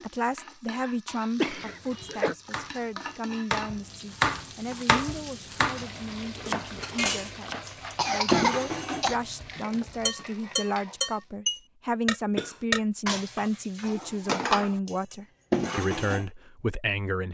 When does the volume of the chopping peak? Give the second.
4 s.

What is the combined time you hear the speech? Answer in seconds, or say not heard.
17 s.